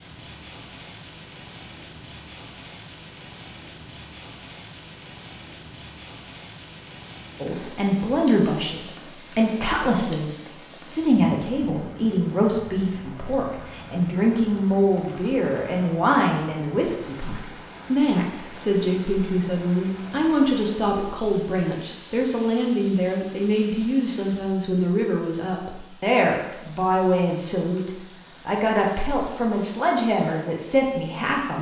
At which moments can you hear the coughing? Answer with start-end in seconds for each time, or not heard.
not heard.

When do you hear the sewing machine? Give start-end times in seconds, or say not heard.
not heard.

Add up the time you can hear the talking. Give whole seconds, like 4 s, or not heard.
24 s.